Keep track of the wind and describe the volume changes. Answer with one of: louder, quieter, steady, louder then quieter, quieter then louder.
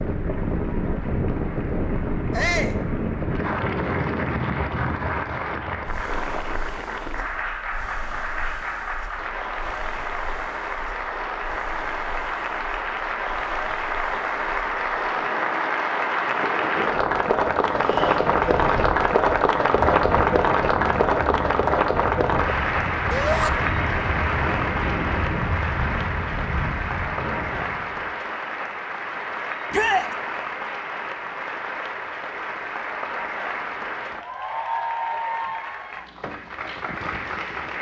quieter then louder.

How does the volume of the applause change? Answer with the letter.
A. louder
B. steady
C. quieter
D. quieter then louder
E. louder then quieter
E.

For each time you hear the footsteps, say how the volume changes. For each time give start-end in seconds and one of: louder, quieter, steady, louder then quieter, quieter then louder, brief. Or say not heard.
not heard.